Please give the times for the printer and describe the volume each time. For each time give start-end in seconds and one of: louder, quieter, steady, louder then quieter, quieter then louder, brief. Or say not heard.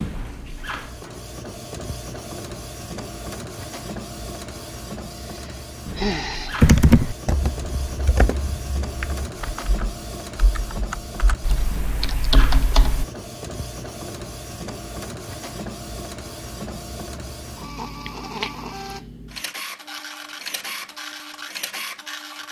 0.0-22.4 steady.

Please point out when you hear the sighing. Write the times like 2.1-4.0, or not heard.
5.2-6.7.